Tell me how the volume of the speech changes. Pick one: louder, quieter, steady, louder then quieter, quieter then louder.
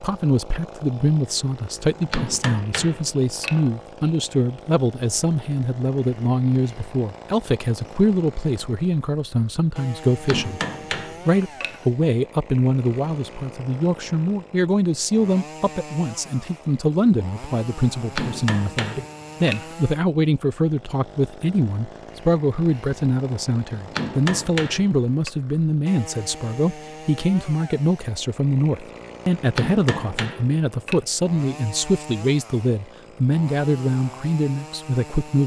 steady.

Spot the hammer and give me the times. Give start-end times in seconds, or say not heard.
1.9-3.7, 10.1-11.8, 17.9-19.8, 23.8-25.3, 29.4-31.0.